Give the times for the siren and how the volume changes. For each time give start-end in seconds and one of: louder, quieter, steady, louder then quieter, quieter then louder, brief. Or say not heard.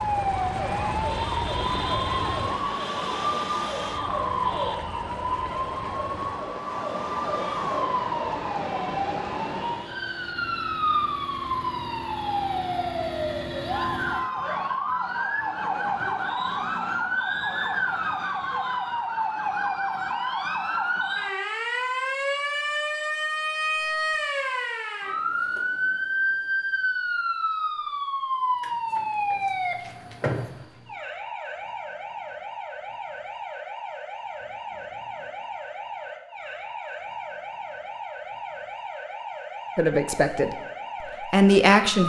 0.0-42.0 quieter.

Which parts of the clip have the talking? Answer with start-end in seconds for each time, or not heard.
39.8-40.5, 41.3-42.0.